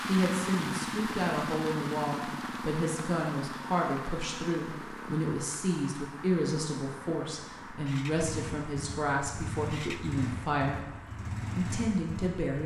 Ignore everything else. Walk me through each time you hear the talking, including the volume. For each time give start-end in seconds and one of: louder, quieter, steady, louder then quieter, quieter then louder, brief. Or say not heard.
0.1-10.8 steady
11.6-12.6 brief.